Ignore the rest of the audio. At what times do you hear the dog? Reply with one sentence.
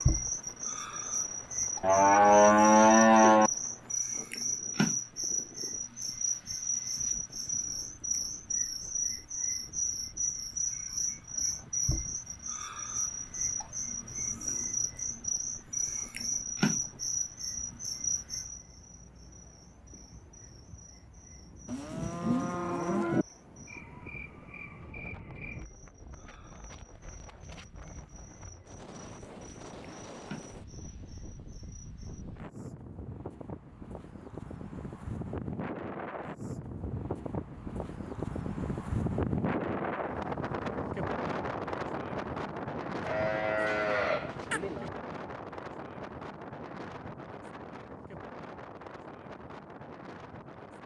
You can't hear the dog here.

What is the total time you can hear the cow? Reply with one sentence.
The cow can be heard for 5 seconds in total.